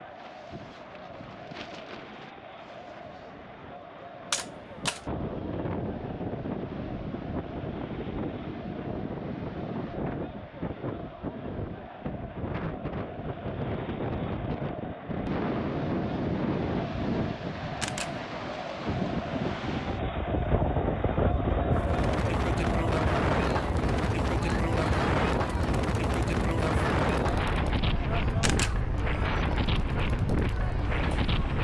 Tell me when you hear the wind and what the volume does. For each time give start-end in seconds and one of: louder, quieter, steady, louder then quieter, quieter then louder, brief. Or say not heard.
0.0-31.5 louder.